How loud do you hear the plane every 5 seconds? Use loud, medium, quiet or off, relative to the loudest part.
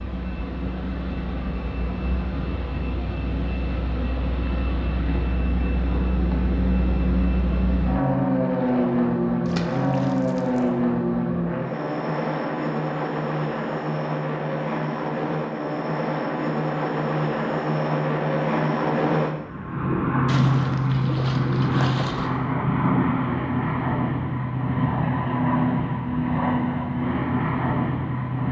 medium, loud, loud, loud, loud, loud.